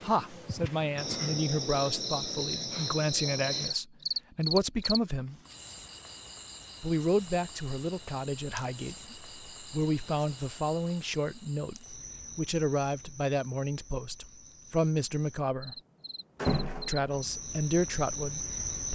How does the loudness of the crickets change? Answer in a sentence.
The loudness of the crickets goes down, then up.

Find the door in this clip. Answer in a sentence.
The door can be heard from 16.4 to 17.2 s.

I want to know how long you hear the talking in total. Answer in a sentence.
The talking can be heard for 16 seconds in total.